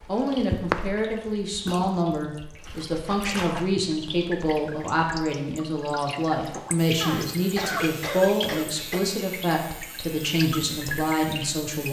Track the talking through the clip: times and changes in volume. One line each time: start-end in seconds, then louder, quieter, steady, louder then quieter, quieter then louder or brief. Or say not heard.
0.1-11.8 steady.